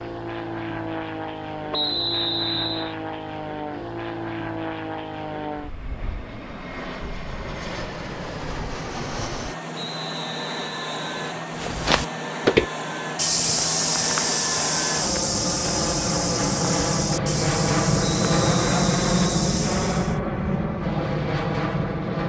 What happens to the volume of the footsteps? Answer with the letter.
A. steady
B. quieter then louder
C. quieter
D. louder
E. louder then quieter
C.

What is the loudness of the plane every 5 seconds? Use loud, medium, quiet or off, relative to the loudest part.
medium, medium, medium, loud, loud.